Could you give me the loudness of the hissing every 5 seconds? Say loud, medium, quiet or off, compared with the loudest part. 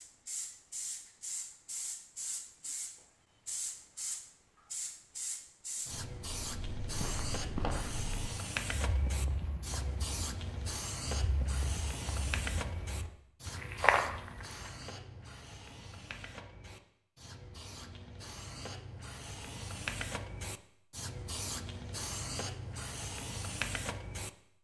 loud, loud, loud, medium, loud.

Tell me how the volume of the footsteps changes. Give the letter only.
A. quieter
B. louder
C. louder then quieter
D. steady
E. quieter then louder
E.